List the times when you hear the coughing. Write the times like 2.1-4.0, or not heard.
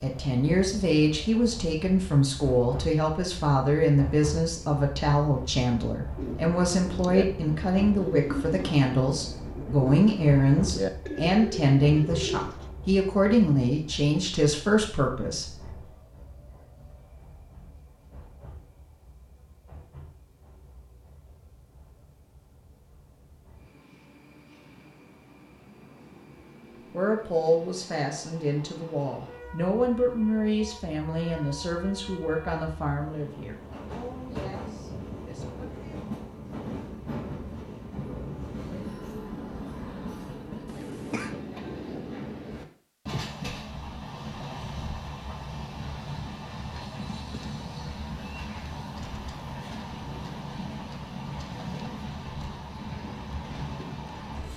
40.6-41.4.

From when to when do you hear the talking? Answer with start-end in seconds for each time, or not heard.
0.0-15.8, 26.9-36.1.